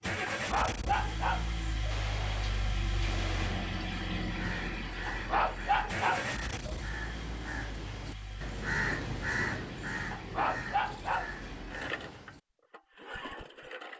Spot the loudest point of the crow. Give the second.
9 s.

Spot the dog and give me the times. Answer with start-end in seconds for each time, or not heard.
0.2-1.9, 5.0-6.8, 10.1-11.3.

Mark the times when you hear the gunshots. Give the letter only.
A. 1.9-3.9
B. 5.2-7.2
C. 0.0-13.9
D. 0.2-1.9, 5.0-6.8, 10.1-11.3
A.